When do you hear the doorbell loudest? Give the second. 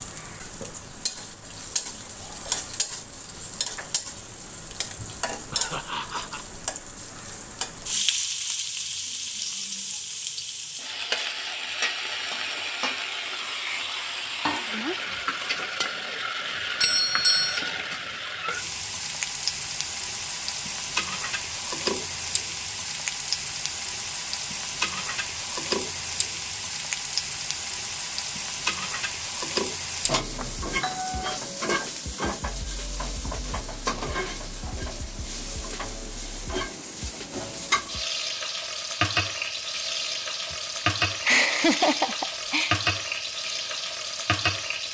17 s.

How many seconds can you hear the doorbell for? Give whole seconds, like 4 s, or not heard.
2 s.